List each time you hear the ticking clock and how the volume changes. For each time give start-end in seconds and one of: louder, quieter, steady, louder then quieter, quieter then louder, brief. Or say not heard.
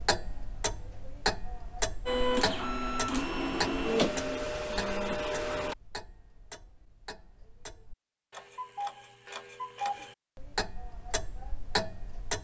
0.0-12.3 quieter then louder.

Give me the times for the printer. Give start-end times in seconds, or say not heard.
2.0-5.8.